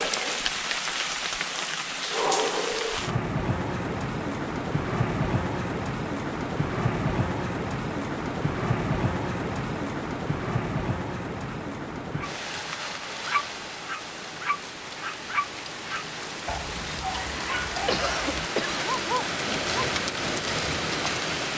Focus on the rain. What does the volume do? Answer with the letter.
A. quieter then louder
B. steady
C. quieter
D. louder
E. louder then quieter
A.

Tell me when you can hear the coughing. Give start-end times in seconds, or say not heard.
17.9-18.9.